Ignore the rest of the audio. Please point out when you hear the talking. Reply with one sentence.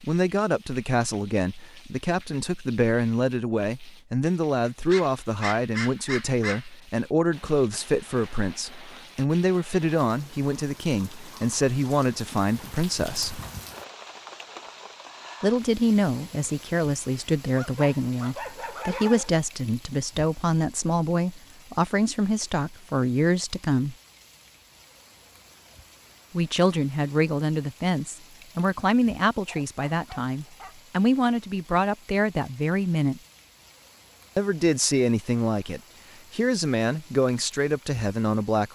You can hear the talking from 0.0 to 13.4 s, from 15.4 to 23.9 s, from 26.3 to 33.2 s and from 34.4 to 38.7 s.